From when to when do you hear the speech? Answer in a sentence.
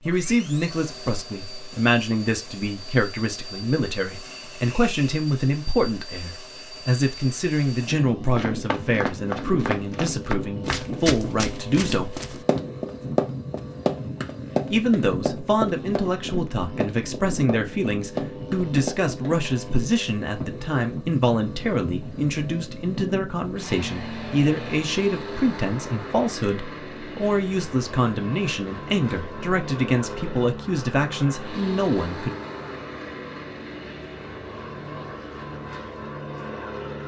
The speech can be heard from 0.1 to 12.2 s and from 14.7 to 32.4 s.